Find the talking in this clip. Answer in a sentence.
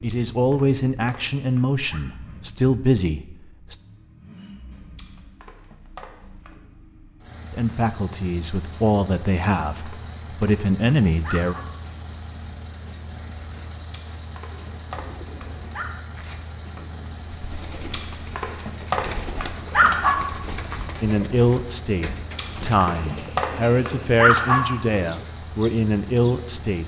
You can hear the talking from 0.0 to 3.8 s, from 7.5 to 11.6 s and from 21.0 to 26.8 s.